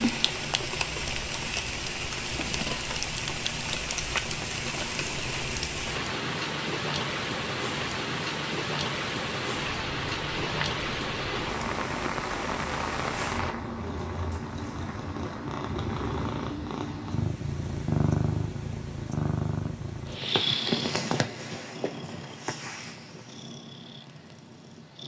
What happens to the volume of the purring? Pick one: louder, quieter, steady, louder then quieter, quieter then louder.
louder.